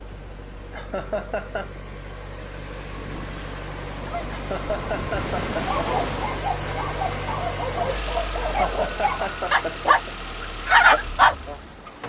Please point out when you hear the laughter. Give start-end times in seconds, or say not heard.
0.7-1.8, 4.3-6.0, 8.4-10.2.